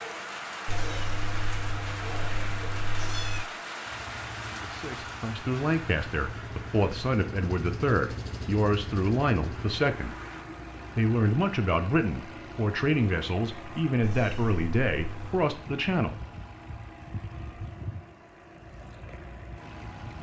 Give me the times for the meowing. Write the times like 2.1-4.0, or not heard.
0.7-3.5, 14.0-15.4.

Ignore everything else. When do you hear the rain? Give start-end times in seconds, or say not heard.
0.0-10.5.